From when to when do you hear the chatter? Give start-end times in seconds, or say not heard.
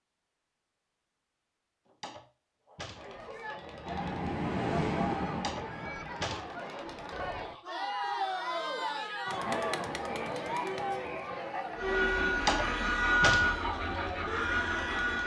2.9-15.2.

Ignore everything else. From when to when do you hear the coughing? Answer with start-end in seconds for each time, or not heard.
not heard.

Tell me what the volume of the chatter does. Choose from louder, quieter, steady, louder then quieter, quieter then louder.
louder then quieter.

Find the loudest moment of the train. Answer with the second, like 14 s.
13 s.